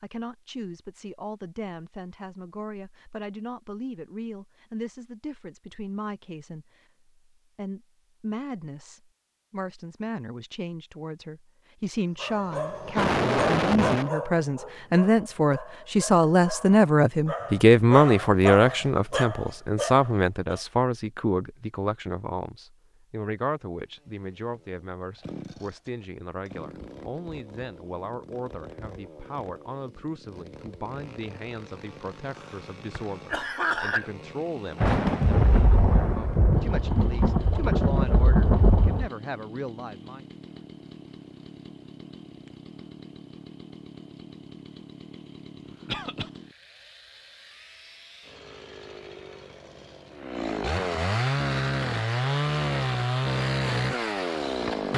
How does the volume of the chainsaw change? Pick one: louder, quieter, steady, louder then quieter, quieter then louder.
louder.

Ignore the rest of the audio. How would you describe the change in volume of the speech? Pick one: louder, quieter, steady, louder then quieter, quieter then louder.
louder then quieter.